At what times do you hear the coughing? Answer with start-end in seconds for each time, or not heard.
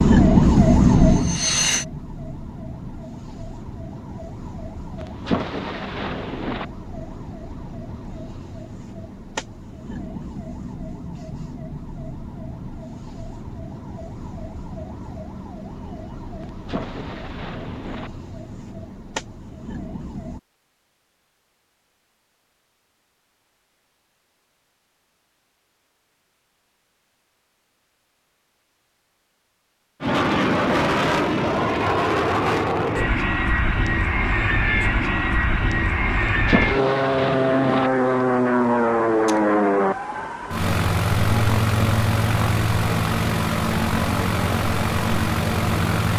not heard.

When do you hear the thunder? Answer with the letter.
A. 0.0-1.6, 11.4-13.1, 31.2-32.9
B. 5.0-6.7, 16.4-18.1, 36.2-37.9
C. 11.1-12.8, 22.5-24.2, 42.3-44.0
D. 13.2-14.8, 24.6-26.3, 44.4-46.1
B.